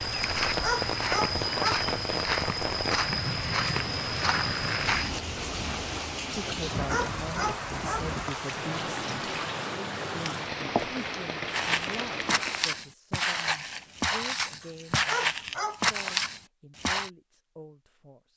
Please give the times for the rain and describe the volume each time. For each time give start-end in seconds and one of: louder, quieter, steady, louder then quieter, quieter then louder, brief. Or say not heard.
0.0-12.8 steady.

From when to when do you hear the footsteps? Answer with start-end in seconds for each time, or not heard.
0.0-5.2, 11.4-17.1.